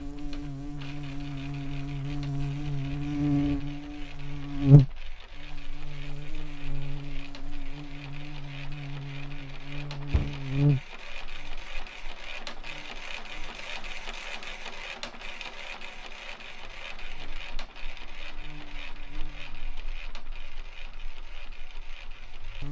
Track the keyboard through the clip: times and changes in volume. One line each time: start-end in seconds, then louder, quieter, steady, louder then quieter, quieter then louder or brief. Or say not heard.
not heard.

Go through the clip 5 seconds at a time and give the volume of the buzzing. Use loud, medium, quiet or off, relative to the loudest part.
loud, quiet, medium, quiet, quiet.